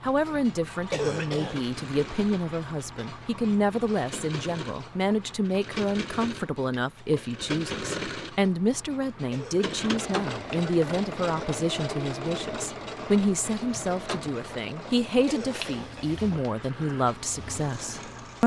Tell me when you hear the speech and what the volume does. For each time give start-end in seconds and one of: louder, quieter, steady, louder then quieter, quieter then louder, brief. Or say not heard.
0.0-18.4 steady.